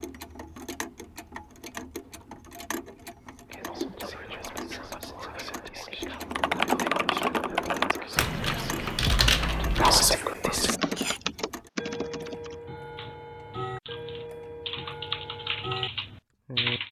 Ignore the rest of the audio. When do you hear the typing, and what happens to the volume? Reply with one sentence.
The typing can be heard from 6.2 to 16.8 s, getting quieter then louder.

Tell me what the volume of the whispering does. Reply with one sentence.
The loudness of the whispering goes up.